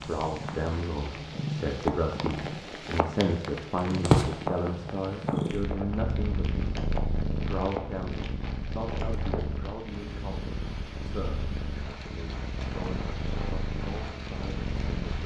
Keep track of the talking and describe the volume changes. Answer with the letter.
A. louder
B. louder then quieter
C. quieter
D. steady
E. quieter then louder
C.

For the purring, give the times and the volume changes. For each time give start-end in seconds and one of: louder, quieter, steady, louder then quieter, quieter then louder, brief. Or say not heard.
0.0-15.2 louder then quieter.